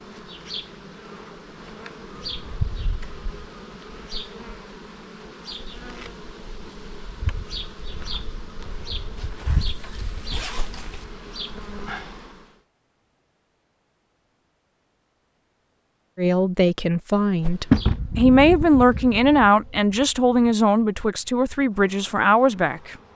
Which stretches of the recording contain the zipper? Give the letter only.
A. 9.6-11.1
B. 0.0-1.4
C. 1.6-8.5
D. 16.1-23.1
A.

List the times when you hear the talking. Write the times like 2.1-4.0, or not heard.
16.1-23.1.